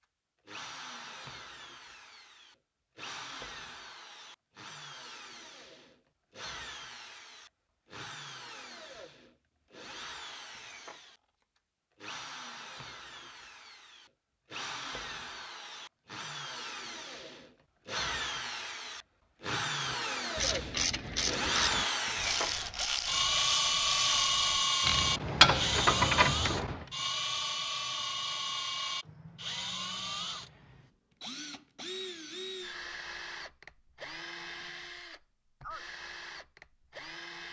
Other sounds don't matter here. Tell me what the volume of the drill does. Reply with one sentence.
The loudness of the drill goes up, then down.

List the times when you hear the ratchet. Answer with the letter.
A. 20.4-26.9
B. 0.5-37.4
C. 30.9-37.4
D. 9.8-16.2
A.